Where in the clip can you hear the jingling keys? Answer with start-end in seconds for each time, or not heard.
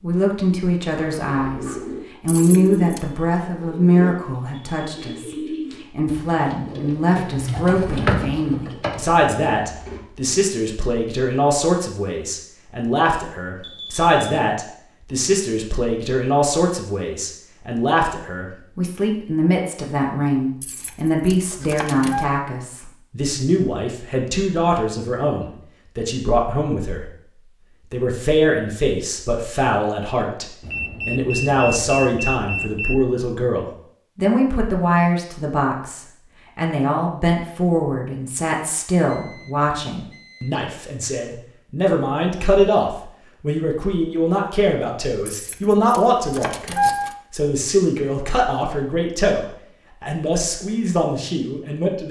2.2-3.0, 20.6-22.2, 45.2-47.1.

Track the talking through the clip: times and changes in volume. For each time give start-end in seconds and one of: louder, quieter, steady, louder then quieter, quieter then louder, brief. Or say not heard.
0.0-27.2 steady
27.9-52.0 steady.